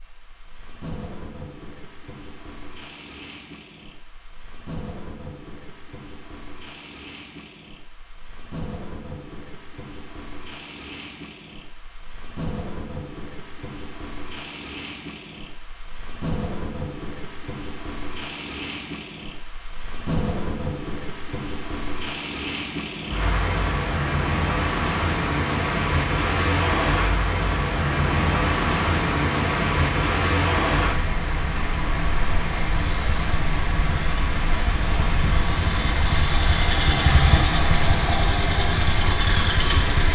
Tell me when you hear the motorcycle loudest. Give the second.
37 s.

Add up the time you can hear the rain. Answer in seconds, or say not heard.
40 s.